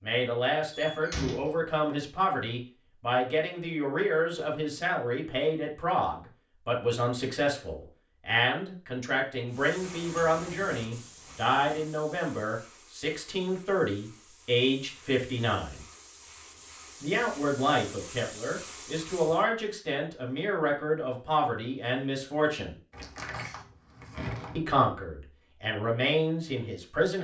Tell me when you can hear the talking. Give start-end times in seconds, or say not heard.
0.0-15.8, 17.0-22.8, 24.6-27.1.